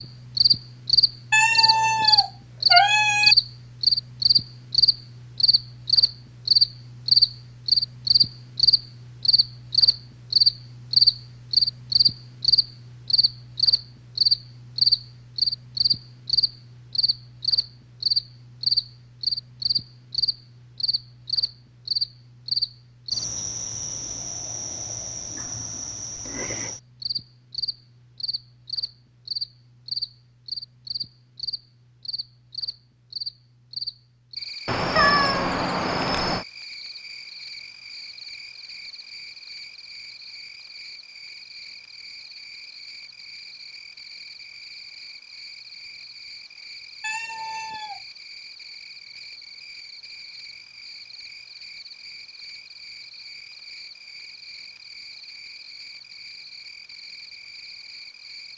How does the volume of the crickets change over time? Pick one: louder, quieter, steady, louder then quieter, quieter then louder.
quieter.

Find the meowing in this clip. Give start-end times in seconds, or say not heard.
1.3-3.4, 34.6-36.5, 47.0-48.0.